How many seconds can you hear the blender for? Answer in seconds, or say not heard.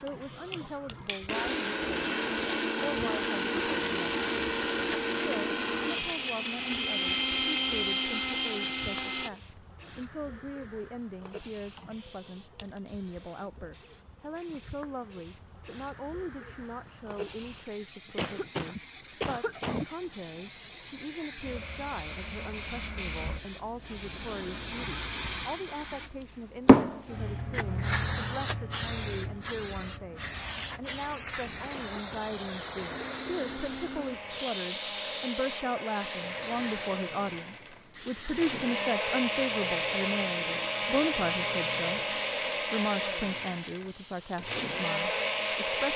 22 s.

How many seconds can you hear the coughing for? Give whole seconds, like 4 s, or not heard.
3 s.